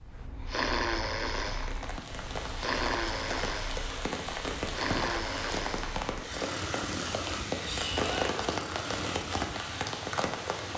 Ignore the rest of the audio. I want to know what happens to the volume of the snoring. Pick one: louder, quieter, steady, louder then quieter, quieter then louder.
quieter.